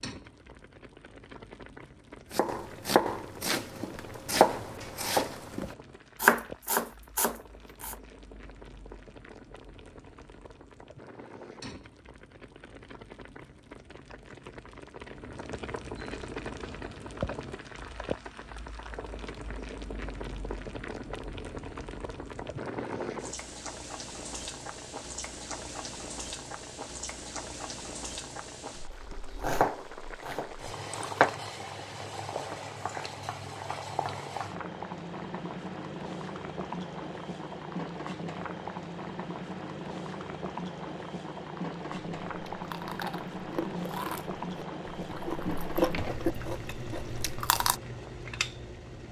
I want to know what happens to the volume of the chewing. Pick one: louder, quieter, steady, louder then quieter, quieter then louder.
louder then quieter.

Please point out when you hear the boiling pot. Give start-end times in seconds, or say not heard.
0.0-49.0.